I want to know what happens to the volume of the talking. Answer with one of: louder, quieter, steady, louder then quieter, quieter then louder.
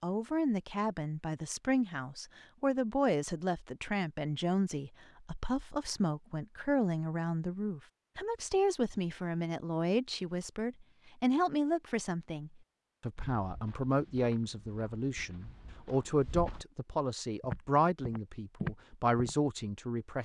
steady.